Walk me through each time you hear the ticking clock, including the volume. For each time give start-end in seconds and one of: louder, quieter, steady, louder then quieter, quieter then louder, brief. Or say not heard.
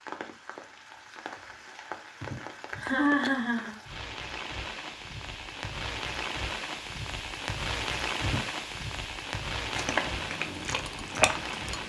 not heard.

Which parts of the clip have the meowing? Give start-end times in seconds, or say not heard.
not heard.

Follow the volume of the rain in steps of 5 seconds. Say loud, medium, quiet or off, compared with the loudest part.
medium, loud, loud.